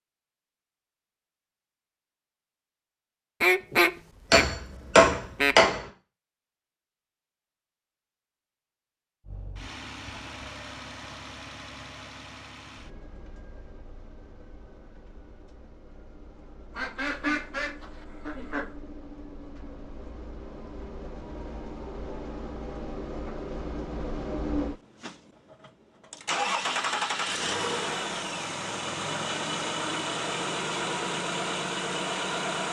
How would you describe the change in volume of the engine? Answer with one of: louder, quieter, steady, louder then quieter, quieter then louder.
quieter then louder.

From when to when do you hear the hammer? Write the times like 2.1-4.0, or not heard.
4.3-5.8.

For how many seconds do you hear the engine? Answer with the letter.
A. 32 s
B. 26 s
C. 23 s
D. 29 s
C.